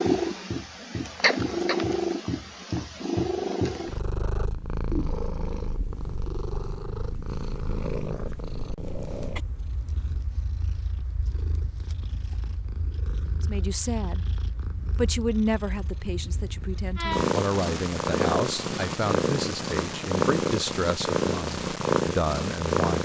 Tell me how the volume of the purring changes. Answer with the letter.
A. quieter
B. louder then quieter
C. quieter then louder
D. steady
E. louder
C.